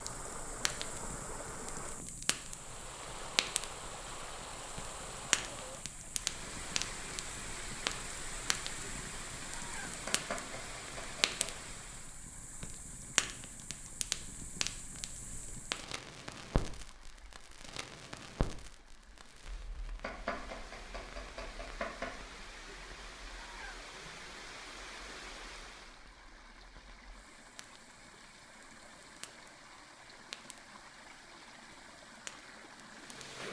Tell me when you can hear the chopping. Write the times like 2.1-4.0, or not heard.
10.1-11.5, 20.0-22.2.